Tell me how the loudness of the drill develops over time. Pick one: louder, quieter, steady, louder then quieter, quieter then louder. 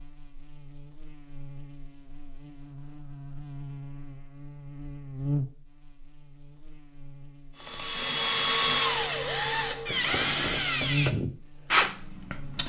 steady.